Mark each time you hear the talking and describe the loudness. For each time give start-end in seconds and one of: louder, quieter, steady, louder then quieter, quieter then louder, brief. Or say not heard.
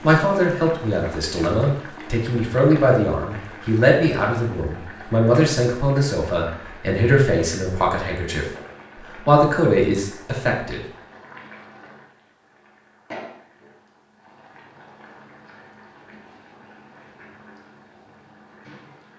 0.0-8.4 steady
9.2-10.8 brief.